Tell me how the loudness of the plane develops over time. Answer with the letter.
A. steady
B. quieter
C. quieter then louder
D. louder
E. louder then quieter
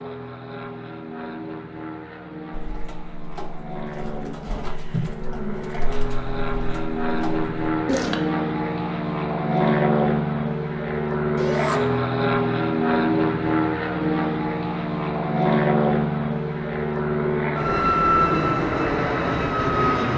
D.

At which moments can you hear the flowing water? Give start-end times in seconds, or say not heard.
not heard.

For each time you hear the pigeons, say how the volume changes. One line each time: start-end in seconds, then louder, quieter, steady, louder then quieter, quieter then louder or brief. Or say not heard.
2.5-8.2 louder then quieter.